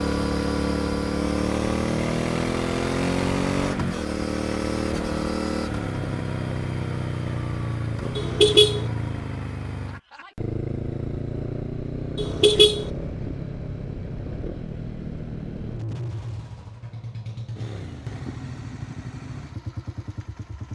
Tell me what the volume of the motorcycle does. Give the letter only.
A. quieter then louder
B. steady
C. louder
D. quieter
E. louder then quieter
D.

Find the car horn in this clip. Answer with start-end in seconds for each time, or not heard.
8.2-8.9, 12.2-12.9.